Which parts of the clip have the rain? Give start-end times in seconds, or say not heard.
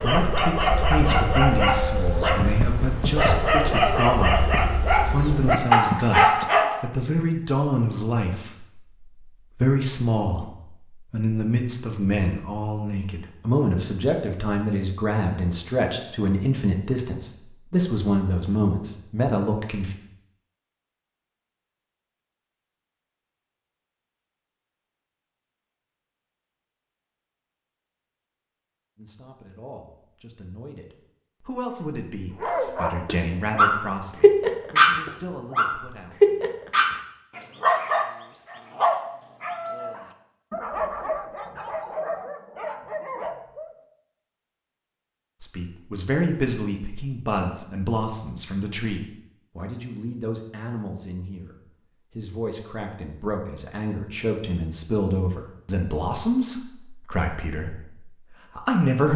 not heard.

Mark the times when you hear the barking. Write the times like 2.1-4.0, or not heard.
0.0-6.8, 32.4-43.8.